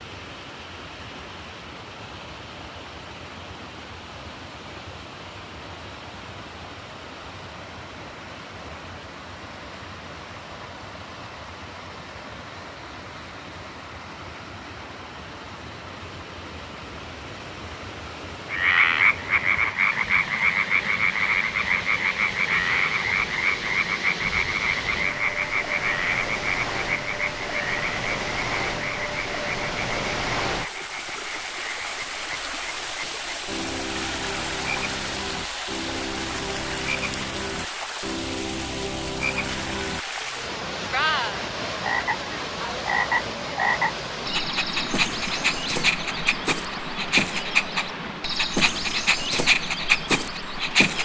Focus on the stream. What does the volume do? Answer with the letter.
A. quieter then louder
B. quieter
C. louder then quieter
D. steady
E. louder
E.